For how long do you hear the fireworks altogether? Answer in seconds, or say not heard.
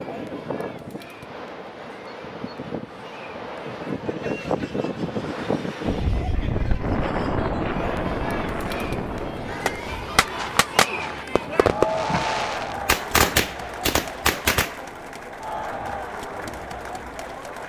5 s.